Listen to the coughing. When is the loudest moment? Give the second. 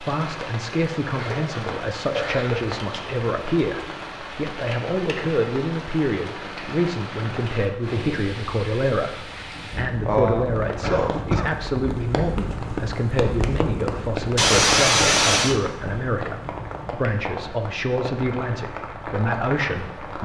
15 s.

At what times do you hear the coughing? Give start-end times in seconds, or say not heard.
1.1-2.6, 10.1-11.5, 14.3-15.6.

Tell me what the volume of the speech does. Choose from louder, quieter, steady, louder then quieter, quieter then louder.
steady.